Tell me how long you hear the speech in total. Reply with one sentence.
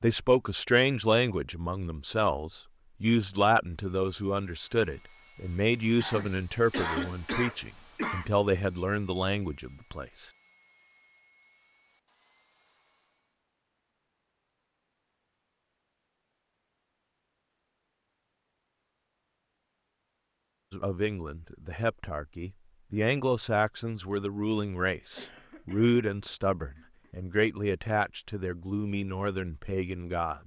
The speech can be heard for 20 seconds in total.